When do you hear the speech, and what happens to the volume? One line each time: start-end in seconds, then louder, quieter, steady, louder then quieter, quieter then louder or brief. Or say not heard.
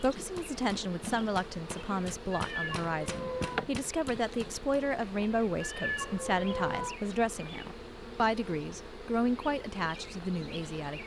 0.0-11.0 steady.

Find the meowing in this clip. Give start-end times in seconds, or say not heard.
2.3-3.6, 5.6-7.0.